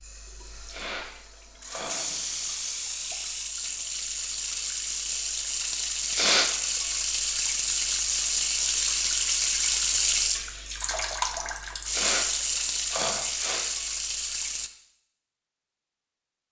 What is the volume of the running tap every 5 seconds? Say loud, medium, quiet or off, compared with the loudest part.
medium, loud, loud, off.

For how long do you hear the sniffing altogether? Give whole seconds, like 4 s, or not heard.
4 s.